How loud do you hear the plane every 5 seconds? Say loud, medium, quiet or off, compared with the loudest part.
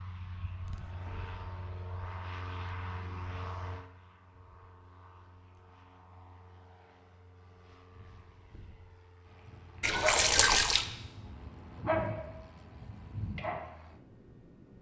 loud, quiet, medium.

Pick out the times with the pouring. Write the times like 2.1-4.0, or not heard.
9.8-10.8.